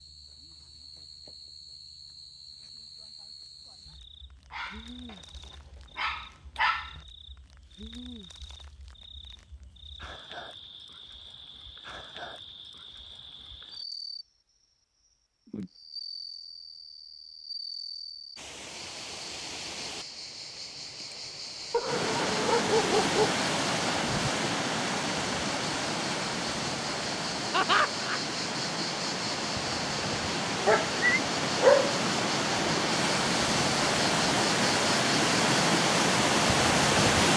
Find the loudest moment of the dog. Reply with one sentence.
The volume of the dog peaks at 32 seconds.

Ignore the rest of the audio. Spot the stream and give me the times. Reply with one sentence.
The stream can be heard from 18.4 to 37.3 s.